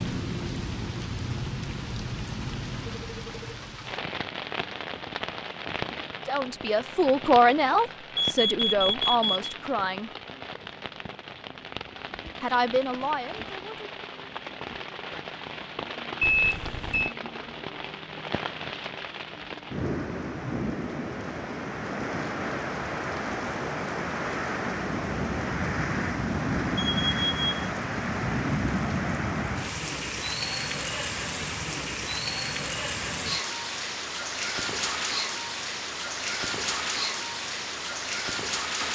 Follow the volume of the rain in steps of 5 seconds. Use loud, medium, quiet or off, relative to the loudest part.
medium, medium, medium, medium, loud, loud, loud, loud.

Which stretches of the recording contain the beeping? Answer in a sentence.
You can hear the beeping from 8.2 to 9.3 s, from 16.2 to 17.1 s and from 26.8 to 27.4 s.